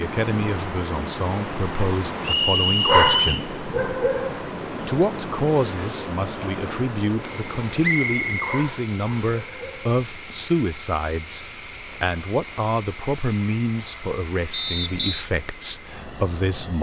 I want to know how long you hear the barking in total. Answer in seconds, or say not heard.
3 s.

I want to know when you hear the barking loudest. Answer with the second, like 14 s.
3 s.